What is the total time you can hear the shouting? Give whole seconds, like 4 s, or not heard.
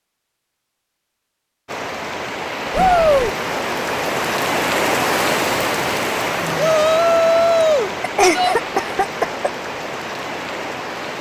3 s.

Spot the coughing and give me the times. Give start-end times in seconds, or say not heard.
8.0-9.4.